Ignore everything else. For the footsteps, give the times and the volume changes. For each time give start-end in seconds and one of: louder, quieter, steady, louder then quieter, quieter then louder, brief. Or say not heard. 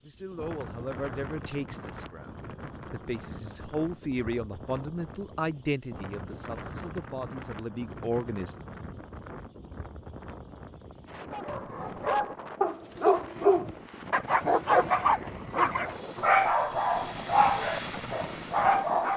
not heard.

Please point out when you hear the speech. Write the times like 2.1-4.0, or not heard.
0.1-8.5.